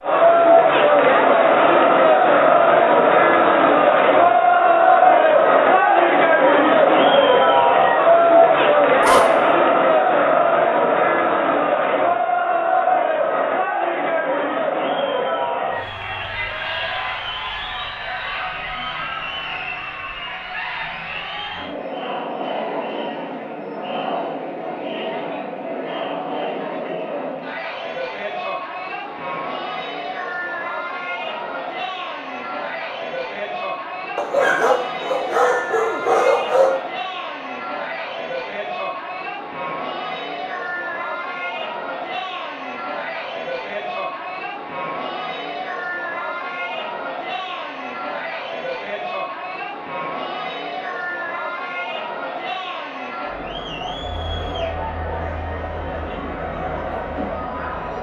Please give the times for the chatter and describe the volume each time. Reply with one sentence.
You can hear the chatter from 0.0 to 57.9 s, getting quieter.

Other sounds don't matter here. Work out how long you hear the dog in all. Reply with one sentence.
The dog can be heard for 3 seconds in total.